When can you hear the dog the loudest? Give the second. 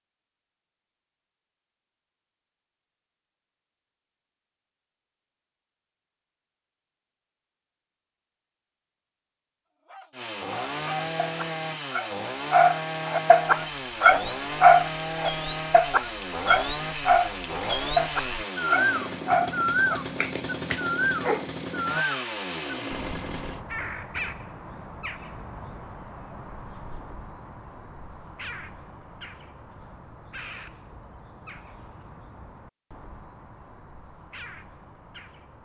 15 s.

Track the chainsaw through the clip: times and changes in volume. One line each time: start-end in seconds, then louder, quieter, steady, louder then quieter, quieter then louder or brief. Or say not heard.
10.1-23.6 steady.